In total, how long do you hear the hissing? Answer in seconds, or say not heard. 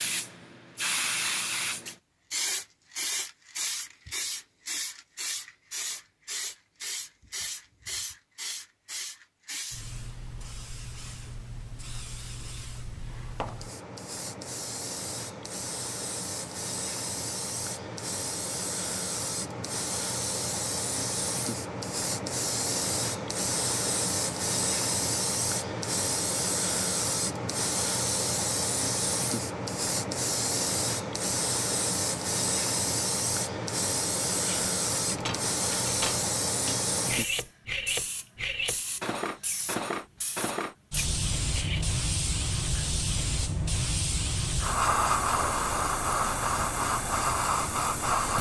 48 s.